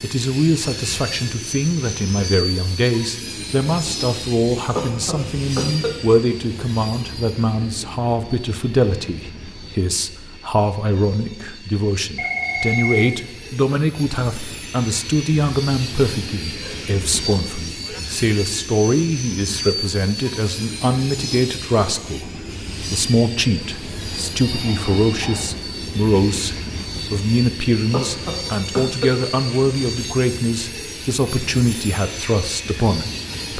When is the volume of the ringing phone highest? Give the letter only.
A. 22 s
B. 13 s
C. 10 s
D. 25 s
B.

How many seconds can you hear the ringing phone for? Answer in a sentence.
The ringing phone can be heard for 3 seconds in total.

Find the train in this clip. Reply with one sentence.
You can hear the train from 0.0 to 33.5 s.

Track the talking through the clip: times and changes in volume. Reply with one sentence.
The talking can be heard from 0.0 to 33.5 s, at a steady volume.